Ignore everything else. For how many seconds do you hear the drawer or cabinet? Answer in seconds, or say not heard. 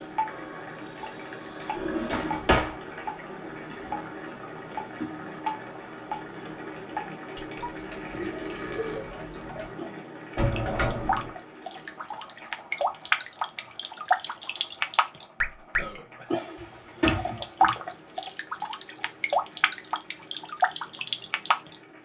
3 s.